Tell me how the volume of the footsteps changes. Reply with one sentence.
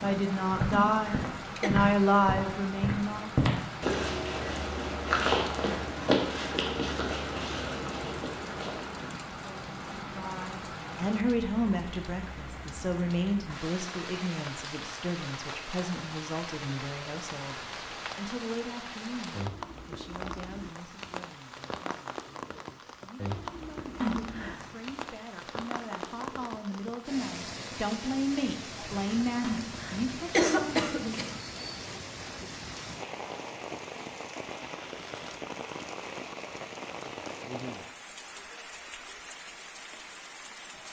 The volume of the footsteps goes down.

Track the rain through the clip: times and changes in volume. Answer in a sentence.
You can hear the rain from 0.0 to 40.8 s, at a steady volume.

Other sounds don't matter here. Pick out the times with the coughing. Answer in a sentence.
The coughing can be heard from 0.7 to 1.7 s, from 24.0 to 24.8 s and from 29.4 to 31.4 s.